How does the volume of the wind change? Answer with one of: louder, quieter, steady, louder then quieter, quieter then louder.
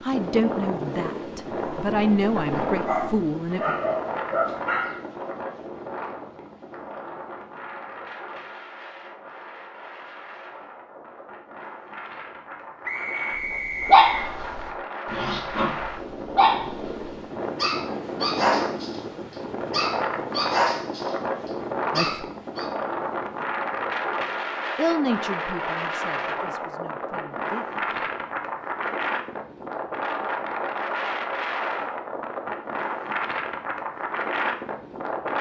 quieter then louder.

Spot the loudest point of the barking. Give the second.
14 s.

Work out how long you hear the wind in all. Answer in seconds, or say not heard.
35 s.